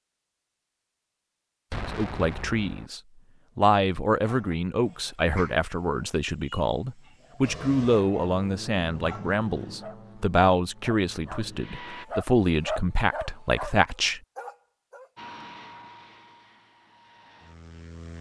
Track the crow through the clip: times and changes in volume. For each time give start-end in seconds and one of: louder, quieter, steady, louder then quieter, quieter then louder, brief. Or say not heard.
not heard.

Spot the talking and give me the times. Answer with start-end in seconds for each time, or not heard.
1.8-14.2.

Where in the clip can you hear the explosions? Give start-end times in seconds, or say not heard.
1.7-2.9.